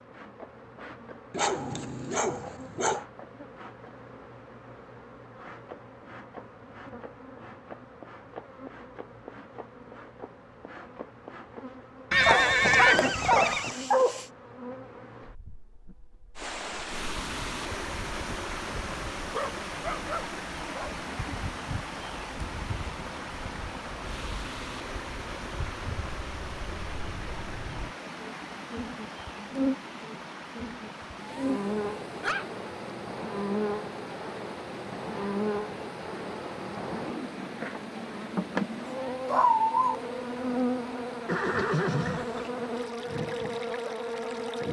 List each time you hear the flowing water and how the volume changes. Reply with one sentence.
You can hear the flowing water from 16.4 to 44.6 s, getting quieter.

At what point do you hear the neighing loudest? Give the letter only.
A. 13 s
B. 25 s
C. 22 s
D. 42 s
A.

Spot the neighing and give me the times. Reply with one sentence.
The neighing can be heard from 12.1 to 13.8 s and from 41.2 to 42.5 s.